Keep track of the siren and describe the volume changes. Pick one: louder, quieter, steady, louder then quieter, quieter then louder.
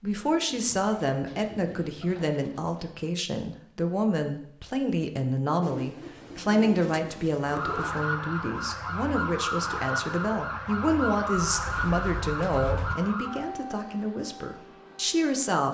quieter.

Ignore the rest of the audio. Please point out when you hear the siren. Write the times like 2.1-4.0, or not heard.
7.4-15.5.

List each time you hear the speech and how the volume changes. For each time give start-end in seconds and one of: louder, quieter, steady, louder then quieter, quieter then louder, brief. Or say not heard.
0.0-15.7 steady.